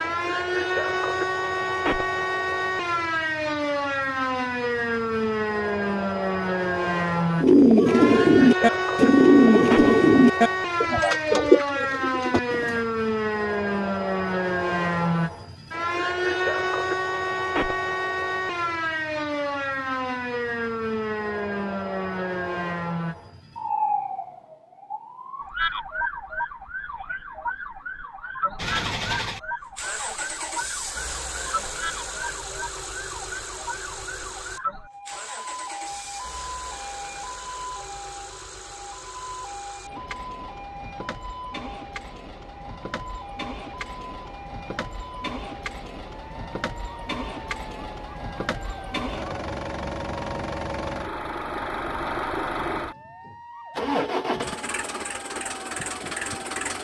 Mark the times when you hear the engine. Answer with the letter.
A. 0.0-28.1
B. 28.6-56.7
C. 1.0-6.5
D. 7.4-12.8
B.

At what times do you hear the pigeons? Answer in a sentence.
You can hear the pigeons from 7.4 to 12.8 s.